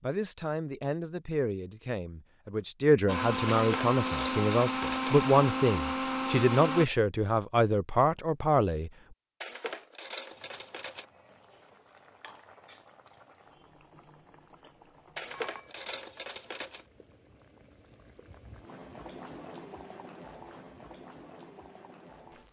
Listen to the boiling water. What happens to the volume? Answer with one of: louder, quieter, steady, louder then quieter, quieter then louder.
louder.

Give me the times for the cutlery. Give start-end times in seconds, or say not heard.
3.5-5.3, 9.4-11.1, 15.2-16.9.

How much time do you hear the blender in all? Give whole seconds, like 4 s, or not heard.
4 s.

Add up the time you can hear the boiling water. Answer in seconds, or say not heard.
12 s.